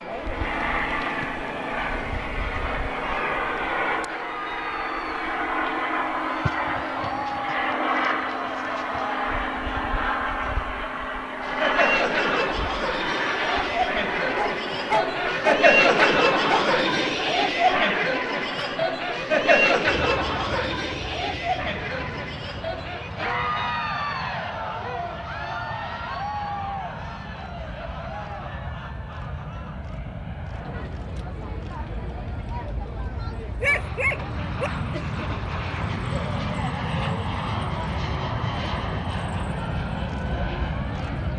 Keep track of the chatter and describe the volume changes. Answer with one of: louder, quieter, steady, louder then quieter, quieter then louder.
louder then quieter.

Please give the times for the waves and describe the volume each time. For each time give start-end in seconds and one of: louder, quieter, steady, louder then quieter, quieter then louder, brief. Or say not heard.
not heard.